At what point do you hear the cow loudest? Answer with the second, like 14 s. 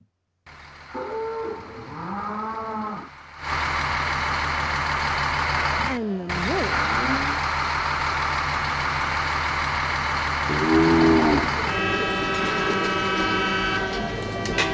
11 s.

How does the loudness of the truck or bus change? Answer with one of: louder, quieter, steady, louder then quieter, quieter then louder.
louder.